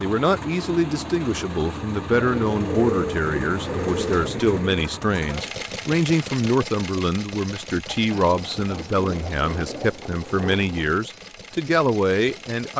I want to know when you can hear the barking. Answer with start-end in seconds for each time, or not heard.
not heard.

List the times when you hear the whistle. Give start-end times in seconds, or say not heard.
not heard.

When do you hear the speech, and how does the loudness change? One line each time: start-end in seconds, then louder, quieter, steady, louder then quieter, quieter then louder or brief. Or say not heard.
0.0-12.7 steady.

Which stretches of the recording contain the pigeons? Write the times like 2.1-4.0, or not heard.
2.1-4.8, 7.8-10.1.